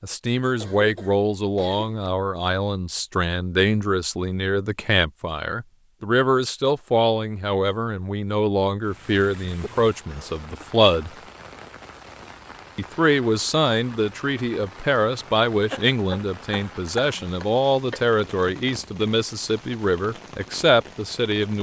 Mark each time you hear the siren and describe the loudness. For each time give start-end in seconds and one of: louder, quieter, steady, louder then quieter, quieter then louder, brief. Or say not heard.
not heard.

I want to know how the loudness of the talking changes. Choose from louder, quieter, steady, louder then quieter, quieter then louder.
steady.